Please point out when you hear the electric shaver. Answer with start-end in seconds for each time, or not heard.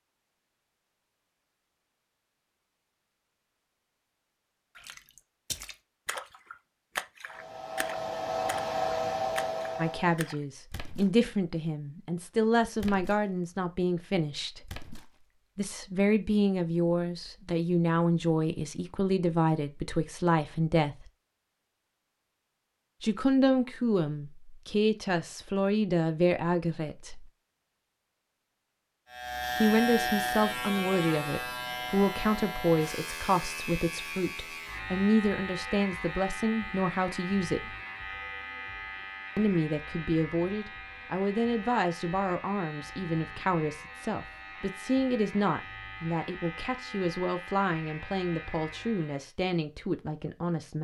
29.1-49.3.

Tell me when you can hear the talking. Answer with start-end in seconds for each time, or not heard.
9.8-14.7, 15.6-21.1, 23.0-27.3, 29.6-37.7, 39.4-50.7.